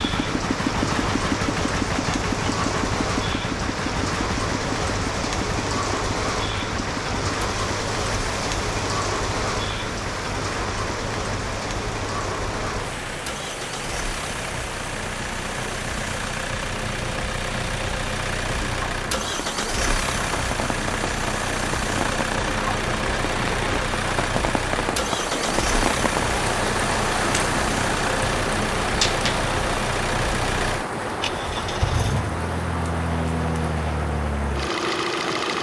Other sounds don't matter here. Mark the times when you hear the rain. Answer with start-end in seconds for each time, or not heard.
0.0-35.5.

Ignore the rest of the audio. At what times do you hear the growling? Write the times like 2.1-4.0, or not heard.
28.9-29.4.